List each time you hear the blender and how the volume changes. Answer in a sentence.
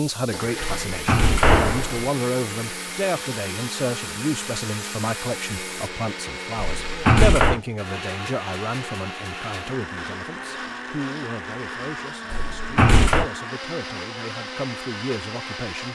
The blender can be heard from 0.1 to 15.9 s, at a steady volume.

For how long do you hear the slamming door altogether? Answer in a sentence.
You can hear the slamming door for 3 seconds altogether.